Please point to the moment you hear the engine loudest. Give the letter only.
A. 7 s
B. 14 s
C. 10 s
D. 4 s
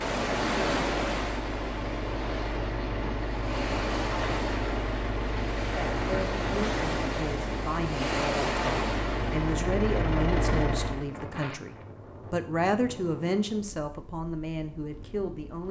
C.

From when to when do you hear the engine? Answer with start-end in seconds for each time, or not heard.
0.0-11.1.